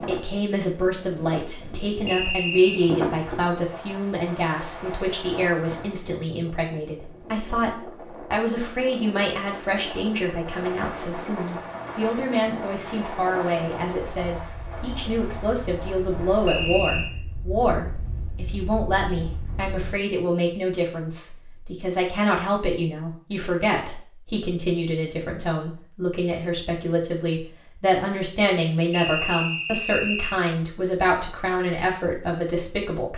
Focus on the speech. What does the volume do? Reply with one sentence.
The volume of the speech stays about the same.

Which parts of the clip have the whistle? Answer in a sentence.
You can hear the whistle from 2.0 to 2.9 s, from 16.4 to 17.1 s and from 28.9 to 30.4 s.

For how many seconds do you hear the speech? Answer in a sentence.
The speech can be heard for 33 seconds in total.